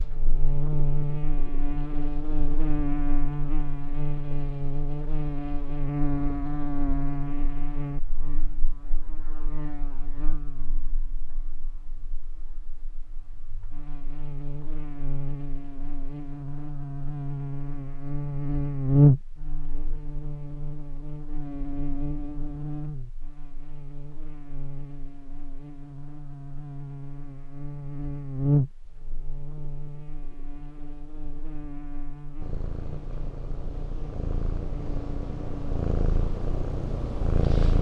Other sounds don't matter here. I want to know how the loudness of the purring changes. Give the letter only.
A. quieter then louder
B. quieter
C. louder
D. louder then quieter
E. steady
C.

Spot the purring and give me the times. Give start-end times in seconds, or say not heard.
32.4-37.7.